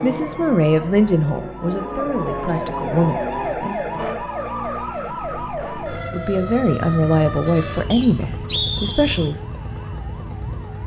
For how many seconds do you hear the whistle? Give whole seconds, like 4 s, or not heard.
2 s.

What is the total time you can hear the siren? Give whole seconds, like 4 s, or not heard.
11 s.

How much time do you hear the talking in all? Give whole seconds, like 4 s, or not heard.
7 s.